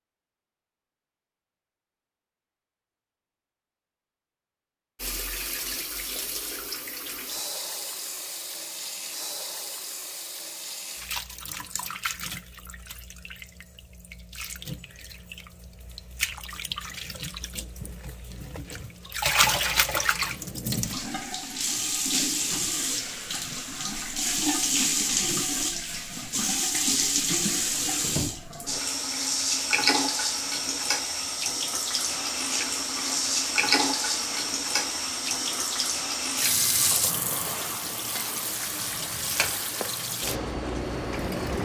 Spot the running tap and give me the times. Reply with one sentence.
The running tap can be heard from 5.0 to 41.6 s.